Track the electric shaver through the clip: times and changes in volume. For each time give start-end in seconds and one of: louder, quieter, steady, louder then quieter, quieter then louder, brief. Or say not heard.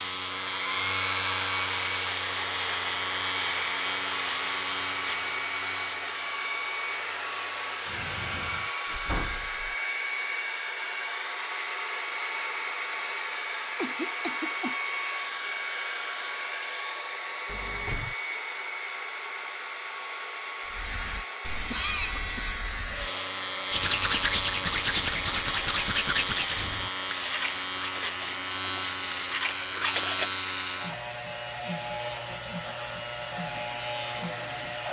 0.0-8.7 quieter
20.6-34.8 steady.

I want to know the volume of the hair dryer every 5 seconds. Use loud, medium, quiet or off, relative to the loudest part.
loud, loud, loud, loud, medium, medium, medium.